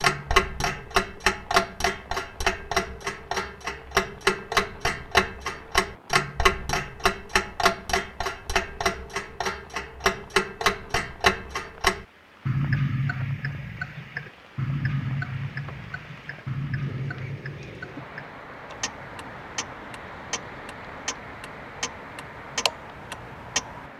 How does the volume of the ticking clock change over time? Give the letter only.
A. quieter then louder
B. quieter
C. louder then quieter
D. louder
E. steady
B.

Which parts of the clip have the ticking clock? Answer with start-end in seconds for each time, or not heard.
0.0-23.9.